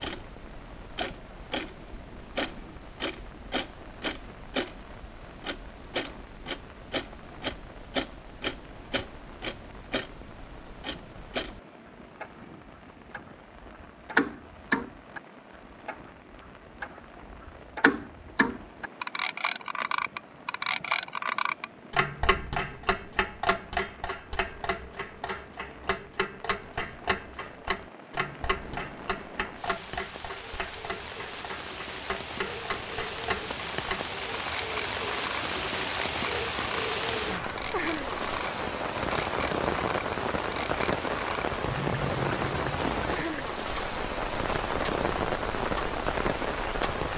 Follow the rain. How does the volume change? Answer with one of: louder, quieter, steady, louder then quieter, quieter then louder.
louder.